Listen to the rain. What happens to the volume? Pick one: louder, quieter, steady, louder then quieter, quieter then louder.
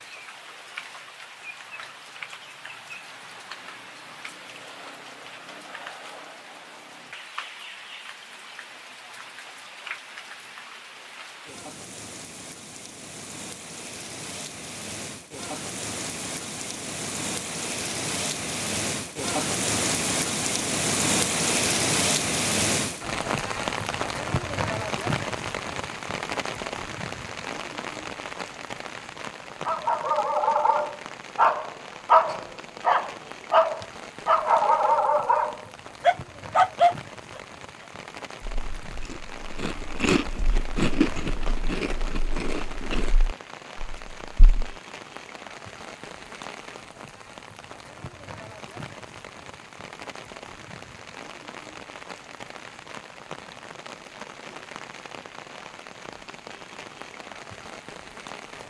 louder then quieter.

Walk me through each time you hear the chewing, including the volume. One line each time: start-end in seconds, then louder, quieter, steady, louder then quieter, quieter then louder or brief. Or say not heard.
38.4-44.8 louder then quieter.